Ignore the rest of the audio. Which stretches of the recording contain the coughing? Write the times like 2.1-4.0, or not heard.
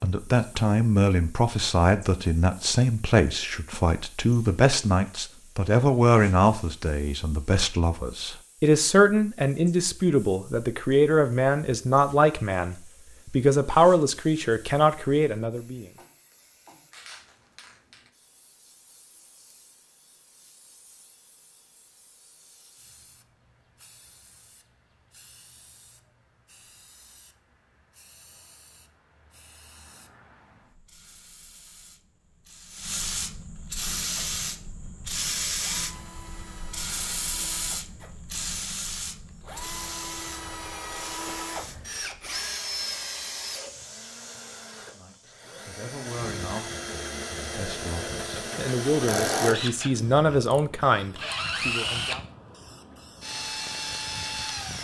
15.9-17.6.